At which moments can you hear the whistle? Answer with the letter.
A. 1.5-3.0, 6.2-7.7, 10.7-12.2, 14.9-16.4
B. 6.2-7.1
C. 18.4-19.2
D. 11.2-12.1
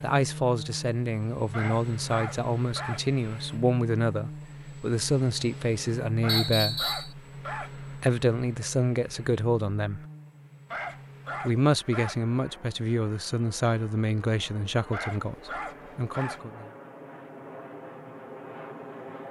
B.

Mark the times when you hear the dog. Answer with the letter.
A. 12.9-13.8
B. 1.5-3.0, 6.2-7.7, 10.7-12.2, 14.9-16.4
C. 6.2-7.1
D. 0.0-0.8
B.